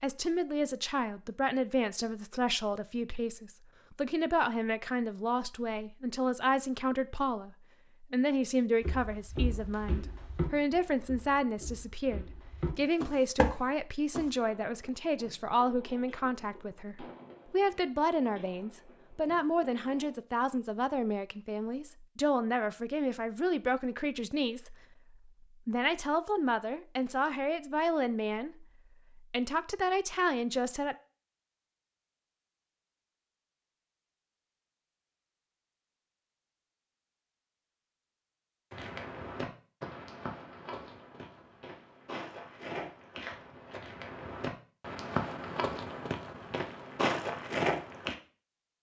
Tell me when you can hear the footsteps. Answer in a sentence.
You can hear the footsteps from 8.8 to 14.3 s and from 38.7 to 48.1 s.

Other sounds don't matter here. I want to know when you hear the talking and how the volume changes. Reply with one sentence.
You can hear the talking from 0.0 to 30.9 s, at a steady volume.